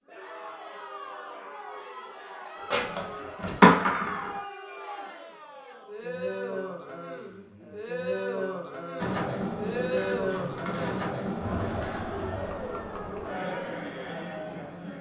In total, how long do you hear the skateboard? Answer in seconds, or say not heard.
5 s.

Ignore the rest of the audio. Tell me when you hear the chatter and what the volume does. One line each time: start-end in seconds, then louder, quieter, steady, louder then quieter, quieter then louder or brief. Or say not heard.
0.1-14.9 louder.